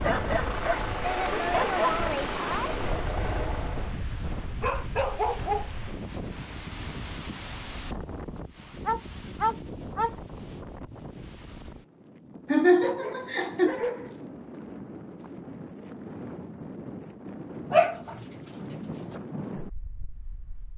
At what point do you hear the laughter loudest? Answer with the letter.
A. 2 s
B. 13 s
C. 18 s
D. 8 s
B.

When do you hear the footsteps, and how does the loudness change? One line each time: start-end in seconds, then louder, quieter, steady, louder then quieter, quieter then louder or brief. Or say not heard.
not heard.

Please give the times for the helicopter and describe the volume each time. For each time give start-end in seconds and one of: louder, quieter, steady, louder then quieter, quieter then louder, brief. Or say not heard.
0.0-4.0 steady.